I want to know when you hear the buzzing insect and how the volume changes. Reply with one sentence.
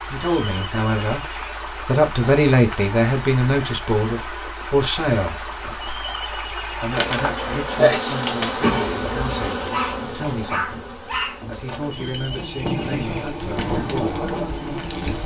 The buzzing insect can be heard from 6.9 to 15.2 s, getting quieter then louder.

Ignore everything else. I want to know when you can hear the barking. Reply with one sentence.
You can hear the barking from 9.7 to 11.4 s.